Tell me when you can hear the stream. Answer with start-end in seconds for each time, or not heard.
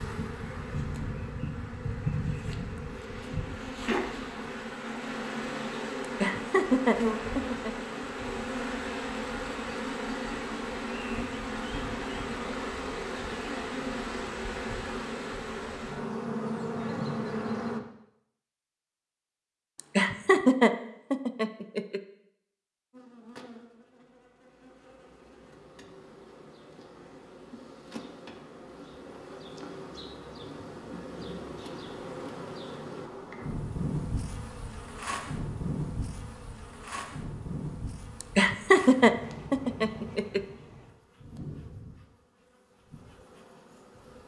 not heard.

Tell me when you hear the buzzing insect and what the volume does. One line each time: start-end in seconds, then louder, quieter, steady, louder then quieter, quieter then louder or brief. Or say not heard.
0.0-17.8 steady
22.9-44.2 louder then quieter.